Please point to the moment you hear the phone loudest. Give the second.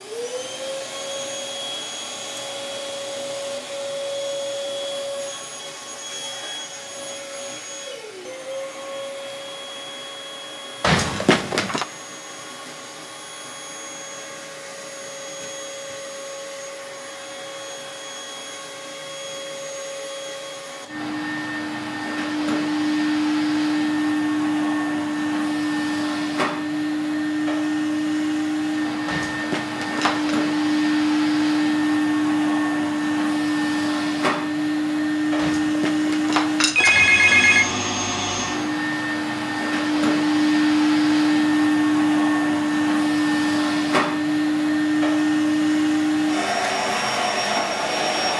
37 s.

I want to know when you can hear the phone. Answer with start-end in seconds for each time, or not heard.
10.8-11.8, 29.1-30.4, 35.4-37.7.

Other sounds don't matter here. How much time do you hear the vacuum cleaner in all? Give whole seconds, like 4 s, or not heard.
48 s.